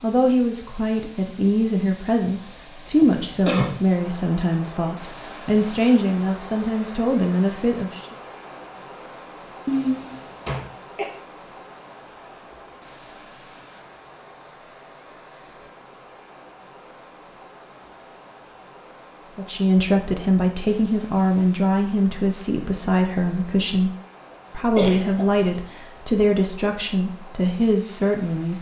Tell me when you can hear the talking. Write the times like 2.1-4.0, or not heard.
0.0-8.1, 19.4-23.9, 24.5-28.5.